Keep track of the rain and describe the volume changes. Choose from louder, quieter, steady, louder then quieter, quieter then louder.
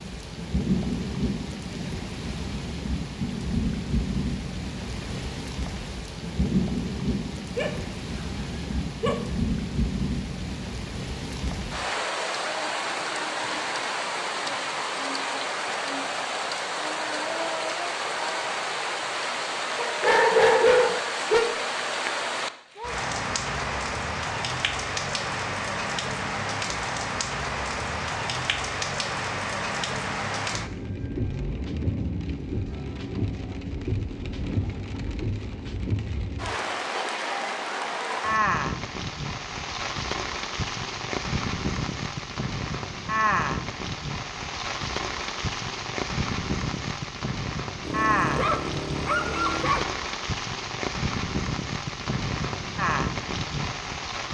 steady.